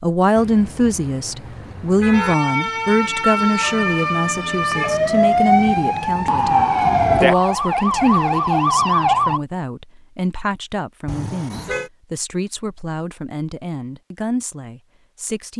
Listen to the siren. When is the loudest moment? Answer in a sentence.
The volume of the siren peaks at 7 seconds.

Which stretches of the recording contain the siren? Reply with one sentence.
You can hear the siren from 2.1 to 9.4 s.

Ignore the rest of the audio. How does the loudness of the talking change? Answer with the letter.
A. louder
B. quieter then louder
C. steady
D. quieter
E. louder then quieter
D.